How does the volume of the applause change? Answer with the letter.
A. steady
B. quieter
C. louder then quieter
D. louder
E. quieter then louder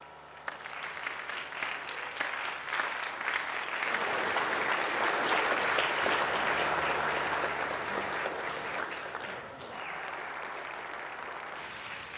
C.